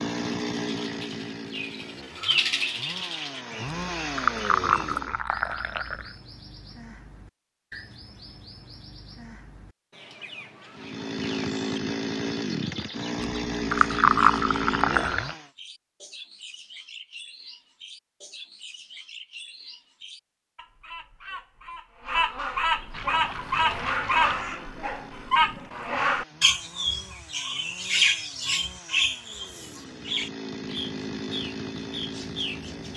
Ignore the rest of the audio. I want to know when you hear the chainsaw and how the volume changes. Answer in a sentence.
The chainsaw can be heard from 0.0 to 5.2 s, getting quieter then louder; from 10.7 to 15.5 s, at a steady volume; and from 23.0 to 32.9 s, getting louder.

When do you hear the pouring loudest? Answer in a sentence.
The loudest moment of the pouring is at 14 seconds.